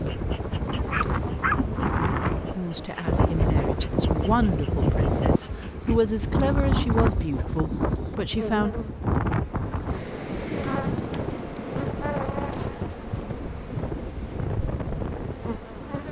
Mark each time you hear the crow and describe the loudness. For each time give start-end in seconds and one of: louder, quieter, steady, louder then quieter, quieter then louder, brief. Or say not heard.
not heard.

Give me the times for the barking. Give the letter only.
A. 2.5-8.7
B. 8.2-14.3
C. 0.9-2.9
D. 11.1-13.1
C.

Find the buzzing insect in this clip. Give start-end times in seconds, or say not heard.
0.0-16.0.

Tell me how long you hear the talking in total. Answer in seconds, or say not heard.
6 s.